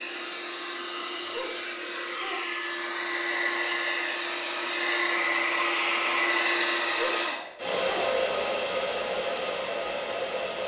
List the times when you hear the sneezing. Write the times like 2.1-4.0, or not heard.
1.2-2.6, 6.8-8.2.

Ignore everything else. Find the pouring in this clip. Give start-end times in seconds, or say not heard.
not heard.